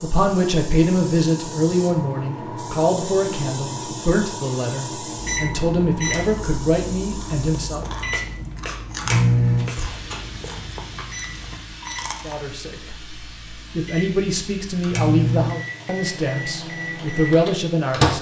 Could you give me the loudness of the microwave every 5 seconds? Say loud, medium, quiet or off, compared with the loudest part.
off, loud, quiet, loud.